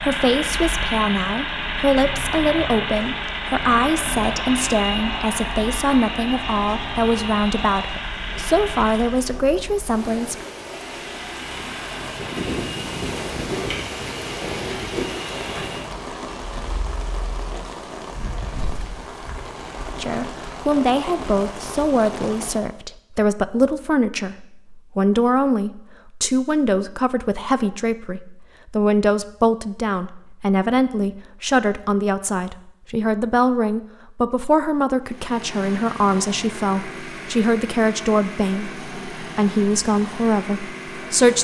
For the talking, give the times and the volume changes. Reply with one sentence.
You can hear the talking from 0.0 to 10.4 s, at a steady volume; and from 20.0 to 41.3 s, at a steady volume.